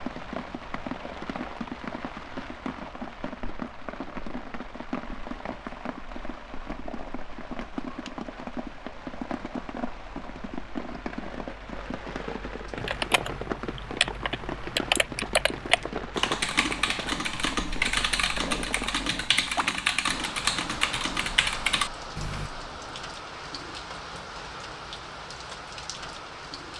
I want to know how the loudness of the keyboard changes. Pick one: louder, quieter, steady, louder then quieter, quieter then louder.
steady.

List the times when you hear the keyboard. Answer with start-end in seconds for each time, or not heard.
12.8-22.5.